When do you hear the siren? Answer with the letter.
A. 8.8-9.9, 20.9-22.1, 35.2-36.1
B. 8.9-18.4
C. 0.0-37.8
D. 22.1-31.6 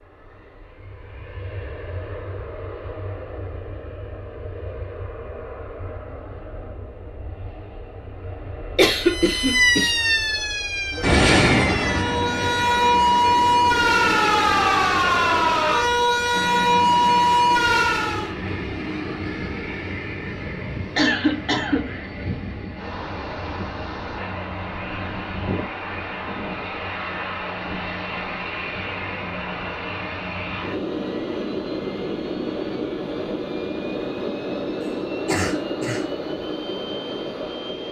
B.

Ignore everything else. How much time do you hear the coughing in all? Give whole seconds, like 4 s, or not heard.
3 s.